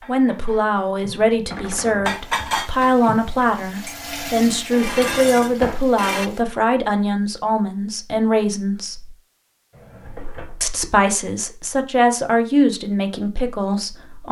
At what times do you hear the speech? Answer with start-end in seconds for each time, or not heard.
0.1-9.2, 10.6-14.2.